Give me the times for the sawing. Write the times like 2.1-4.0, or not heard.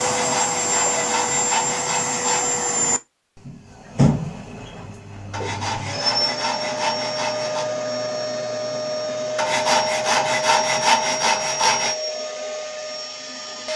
0.0-2.6, 5.3-7.7, 9.3-11.9.